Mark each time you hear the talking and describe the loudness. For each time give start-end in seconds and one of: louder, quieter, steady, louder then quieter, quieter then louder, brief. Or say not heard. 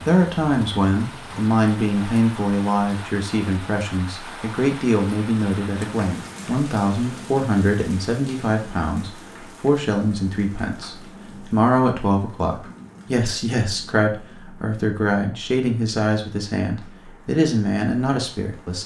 0.1-18.8 steady.